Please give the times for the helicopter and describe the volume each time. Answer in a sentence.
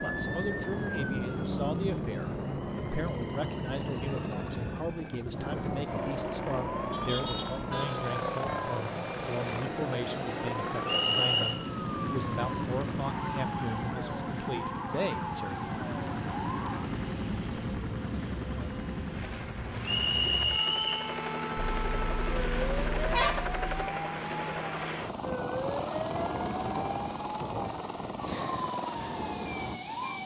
You can hear the helicopter from 0.0 to 30.2 s, at a steady volume.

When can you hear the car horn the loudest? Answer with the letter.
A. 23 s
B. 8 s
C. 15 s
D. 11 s
A.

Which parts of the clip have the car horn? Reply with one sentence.
The car horn can be heard from 6.9 to 8.7 s and from 21.6 to 23.9 s.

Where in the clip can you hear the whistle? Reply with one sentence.
You can hear the whistle from 10.8 to 11.6 s and from 19.8 to 21.1 s.